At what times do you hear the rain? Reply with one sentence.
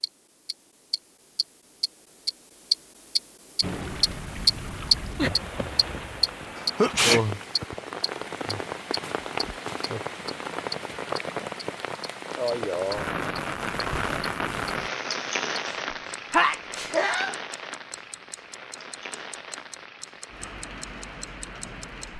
You can hear the rain from 3.6 to 22.1 s.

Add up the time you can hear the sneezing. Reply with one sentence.
The sneezing can be heard for 2 seconds in total.